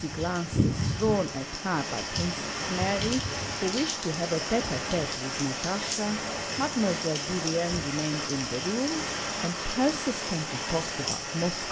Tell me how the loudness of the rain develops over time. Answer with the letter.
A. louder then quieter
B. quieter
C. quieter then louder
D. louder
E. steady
E.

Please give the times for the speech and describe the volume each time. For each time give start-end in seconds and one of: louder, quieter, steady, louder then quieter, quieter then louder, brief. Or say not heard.
0.0-11.6 steady.